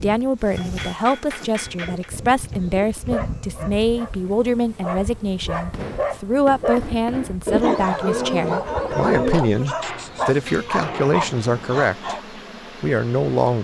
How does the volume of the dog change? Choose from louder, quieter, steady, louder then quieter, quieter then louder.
louder.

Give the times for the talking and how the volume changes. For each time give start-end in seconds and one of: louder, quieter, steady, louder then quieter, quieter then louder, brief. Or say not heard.
0.0-13.6 steady.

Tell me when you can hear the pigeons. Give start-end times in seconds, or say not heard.
1.6-3.2, 7.5-9.3.